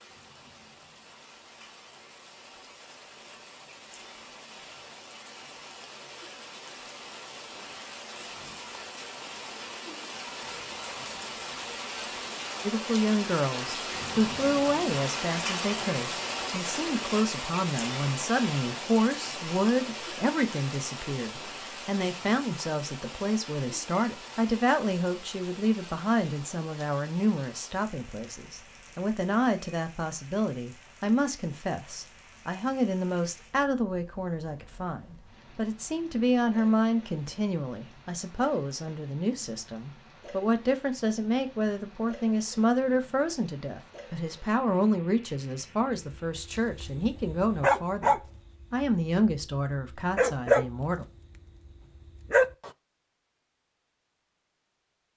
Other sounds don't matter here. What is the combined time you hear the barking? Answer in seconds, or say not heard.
7 s.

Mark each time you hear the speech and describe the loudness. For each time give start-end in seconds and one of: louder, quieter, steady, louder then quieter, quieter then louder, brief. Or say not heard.
12.7-51.0 steady.